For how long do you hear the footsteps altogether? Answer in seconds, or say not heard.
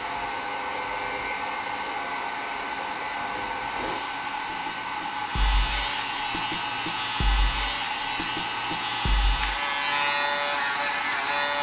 not heard.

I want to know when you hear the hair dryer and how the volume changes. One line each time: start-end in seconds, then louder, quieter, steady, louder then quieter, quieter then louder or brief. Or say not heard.
0.0-11.5 steady.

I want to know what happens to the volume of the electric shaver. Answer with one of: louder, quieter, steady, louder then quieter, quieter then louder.
louder.